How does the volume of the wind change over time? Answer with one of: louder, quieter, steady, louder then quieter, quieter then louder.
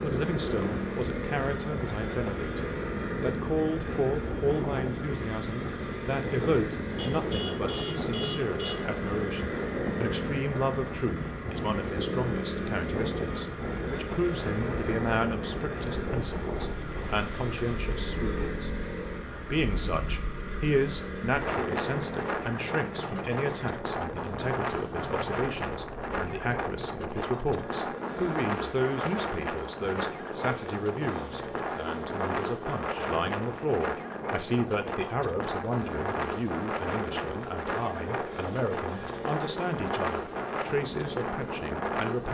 steady.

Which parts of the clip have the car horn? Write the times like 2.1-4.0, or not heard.
7.0-8.8.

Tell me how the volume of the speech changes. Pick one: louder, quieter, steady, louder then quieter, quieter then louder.
steady.